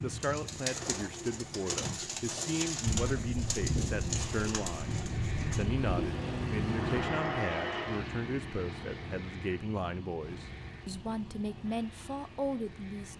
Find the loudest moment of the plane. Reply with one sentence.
The loudest moment of the plane is at 7 seconds.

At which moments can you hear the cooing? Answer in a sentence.
You can hear the cooing from 0.0 to 6.5 s.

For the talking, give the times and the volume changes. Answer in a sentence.
You can hear the talking from 0.0 to 13.1 s, at a steady volume.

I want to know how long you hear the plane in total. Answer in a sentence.
You can hear the plane for 13 seconds altogether.